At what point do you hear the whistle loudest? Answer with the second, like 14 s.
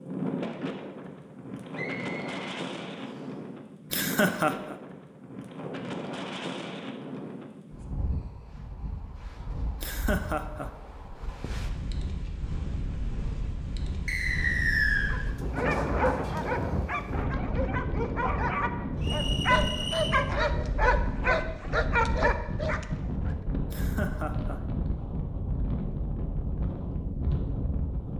15 s.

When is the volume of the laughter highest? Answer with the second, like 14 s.
4 s.